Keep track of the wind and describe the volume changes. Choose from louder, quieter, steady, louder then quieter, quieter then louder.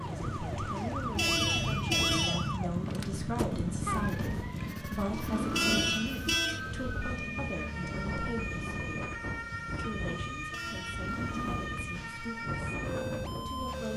steady.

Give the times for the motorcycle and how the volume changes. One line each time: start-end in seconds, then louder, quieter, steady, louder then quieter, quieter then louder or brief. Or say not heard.
0.0-13.9 quieter.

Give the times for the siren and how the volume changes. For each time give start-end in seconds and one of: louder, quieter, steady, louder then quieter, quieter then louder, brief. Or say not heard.
0.0-13.9 steady.